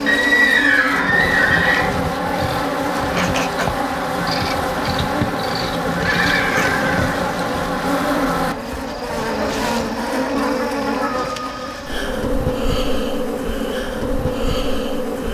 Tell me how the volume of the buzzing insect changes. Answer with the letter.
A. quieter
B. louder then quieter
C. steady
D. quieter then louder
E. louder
C.